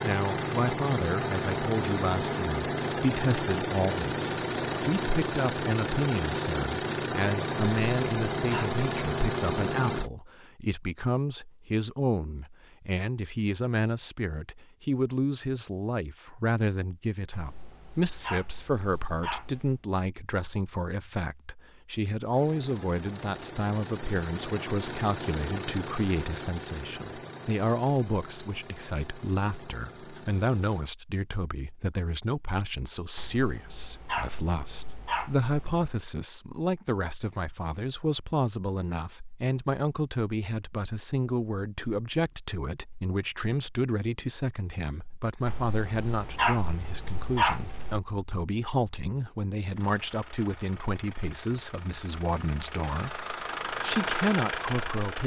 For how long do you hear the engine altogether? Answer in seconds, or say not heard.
24 s.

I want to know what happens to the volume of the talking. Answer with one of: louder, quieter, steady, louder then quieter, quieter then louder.
steady.